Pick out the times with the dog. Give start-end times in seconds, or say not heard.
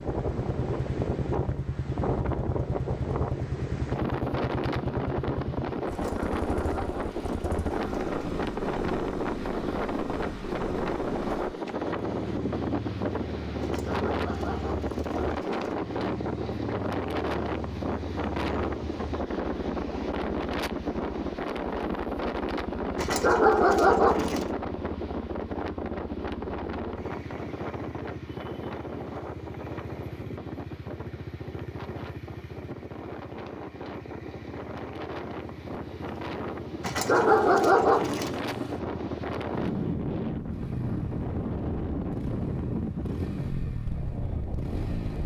5.9-8.3, 13.6-15.8, 22.9-24.5, 36.8-38.4.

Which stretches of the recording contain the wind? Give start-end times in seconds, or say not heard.
0.0-45.2.